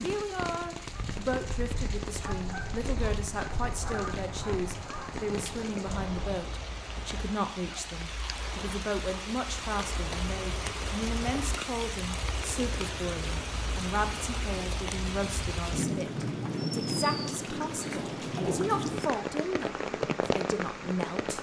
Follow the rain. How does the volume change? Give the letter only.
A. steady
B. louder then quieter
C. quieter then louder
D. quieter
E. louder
E.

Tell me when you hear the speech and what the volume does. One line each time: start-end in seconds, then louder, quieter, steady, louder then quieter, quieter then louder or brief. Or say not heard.
0.0-21.3 steady.